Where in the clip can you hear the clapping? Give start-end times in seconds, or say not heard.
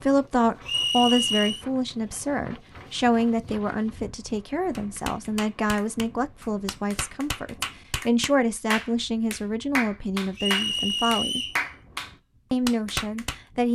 4.7-13.4.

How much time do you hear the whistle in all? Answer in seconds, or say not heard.
2 s.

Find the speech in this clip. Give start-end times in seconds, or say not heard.
0.0-11.4, 12.5-13.6.